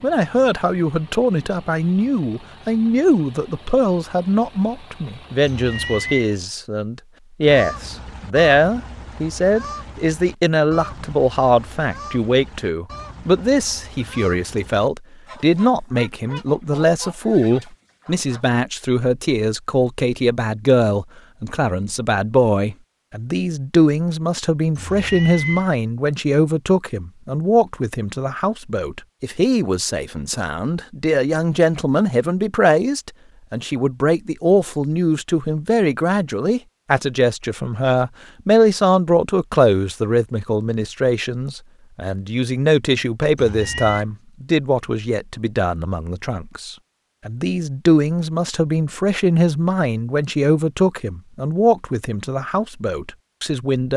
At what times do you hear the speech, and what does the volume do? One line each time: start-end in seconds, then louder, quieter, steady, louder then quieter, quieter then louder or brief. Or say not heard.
0.0-53.9 steady.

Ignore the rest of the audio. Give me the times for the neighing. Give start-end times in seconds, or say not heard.
not heard.